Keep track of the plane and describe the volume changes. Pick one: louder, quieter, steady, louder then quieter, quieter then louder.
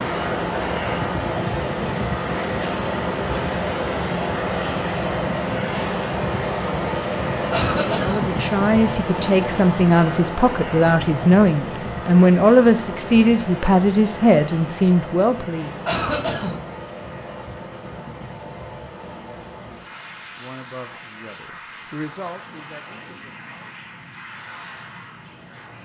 quieter.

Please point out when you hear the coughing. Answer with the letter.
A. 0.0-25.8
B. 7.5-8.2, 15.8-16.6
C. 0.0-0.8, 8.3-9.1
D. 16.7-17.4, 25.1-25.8
B.